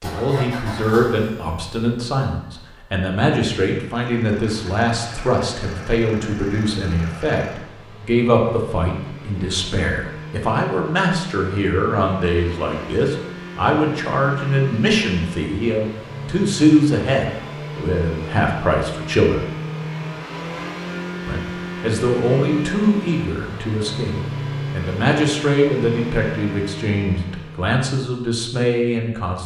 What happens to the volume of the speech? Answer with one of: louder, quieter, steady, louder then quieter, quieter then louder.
steady.